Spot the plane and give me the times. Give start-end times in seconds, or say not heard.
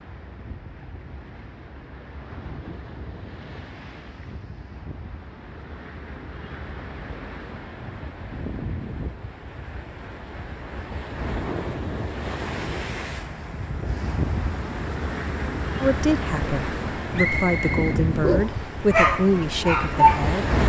not heard.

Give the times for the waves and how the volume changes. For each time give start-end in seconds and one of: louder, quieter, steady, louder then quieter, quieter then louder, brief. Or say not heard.
0.0-20.6 louder.